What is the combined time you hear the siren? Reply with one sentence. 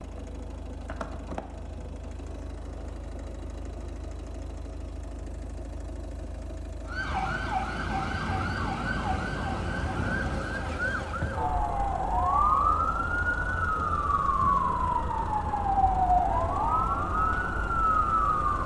You can hear the siren for 12 seconds altogether.